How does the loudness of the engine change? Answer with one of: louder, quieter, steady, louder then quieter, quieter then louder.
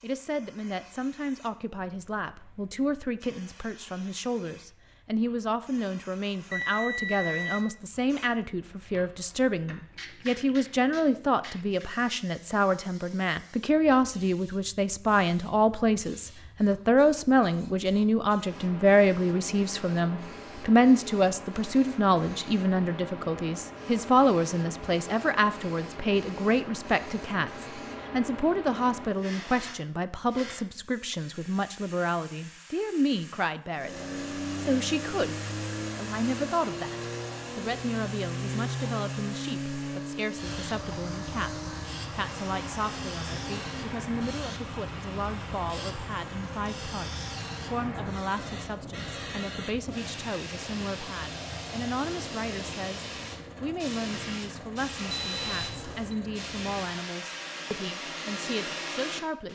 quieter.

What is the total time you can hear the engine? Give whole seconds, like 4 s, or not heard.
23 s.